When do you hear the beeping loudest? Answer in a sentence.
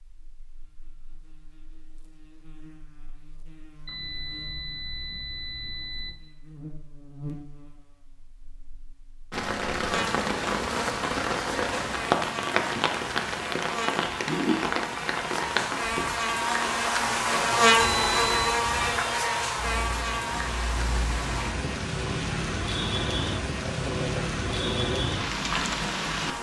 The loudest moment of the beeping is at 18 seconds.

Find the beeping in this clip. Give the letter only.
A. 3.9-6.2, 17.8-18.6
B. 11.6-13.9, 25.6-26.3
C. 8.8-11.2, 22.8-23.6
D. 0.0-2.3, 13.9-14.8
A.